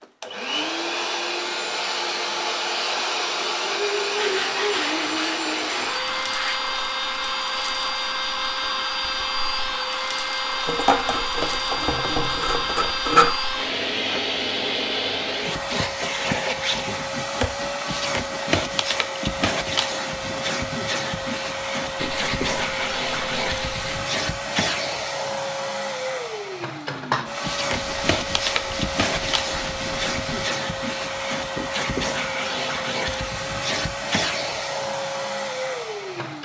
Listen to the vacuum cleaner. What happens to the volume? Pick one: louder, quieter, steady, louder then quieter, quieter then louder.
steady.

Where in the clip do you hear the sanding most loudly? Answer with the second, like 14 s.
13 s.